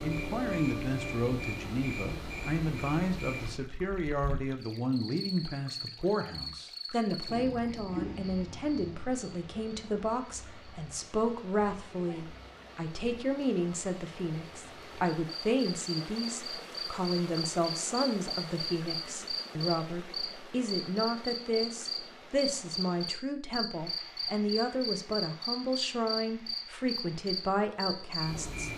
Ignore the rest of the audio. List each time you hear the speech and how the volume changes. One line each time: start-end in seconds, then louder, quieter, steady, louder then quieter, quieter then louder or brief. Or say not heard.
0.0-28.7 steady.